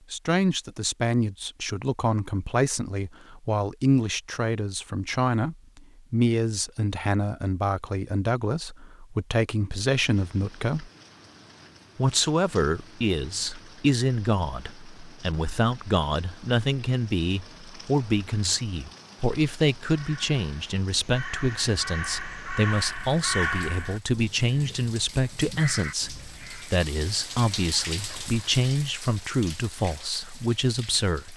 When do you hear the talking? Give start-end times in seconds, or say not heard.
0.1-10.9, 11.9-31.3.